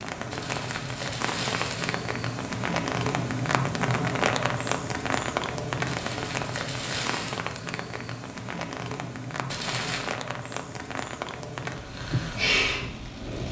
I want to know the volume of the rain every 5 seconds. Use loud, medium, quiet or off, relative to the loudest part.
loud, loud, medium.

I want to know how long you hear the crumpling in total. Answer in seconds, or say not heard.
4 s.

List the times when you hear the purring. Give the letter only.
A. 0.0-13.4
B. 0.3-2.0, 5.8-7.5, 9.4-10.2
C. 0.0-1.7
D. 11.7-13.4
D.